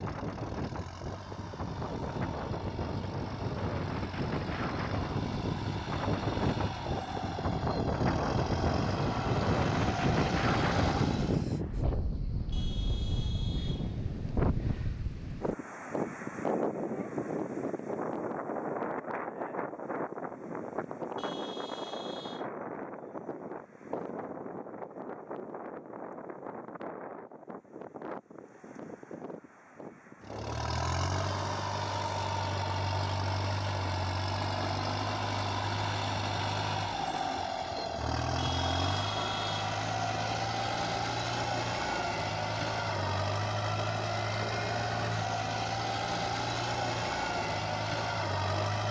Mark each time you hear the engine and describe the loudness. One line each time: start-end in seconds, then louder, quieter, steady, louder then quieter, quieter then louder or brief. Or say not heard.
0.0-11.4 louder
30.2-48.8 steady.